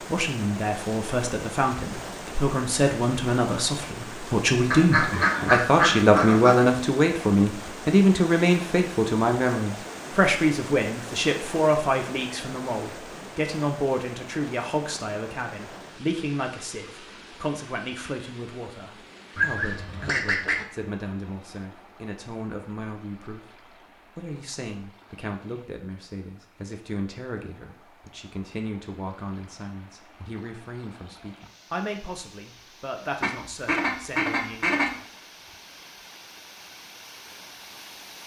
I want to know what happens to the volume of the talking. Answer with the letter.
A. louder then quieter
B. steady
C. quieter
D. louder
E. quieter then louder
C.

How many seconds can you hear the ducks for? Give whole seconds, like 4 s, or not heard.
5 s.